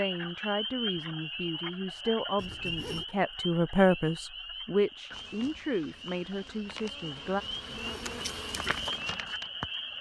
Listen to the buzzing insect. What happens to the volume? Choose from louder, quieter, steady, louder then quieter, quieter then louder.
louder.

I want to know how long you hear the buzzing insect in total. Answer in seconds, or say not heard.
5 s.